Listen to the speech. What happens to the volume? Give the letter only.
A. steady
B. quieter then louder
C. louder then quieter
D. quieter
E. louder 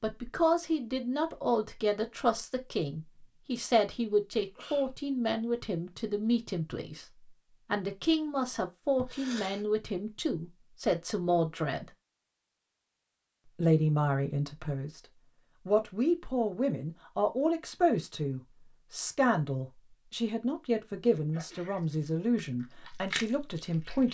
A.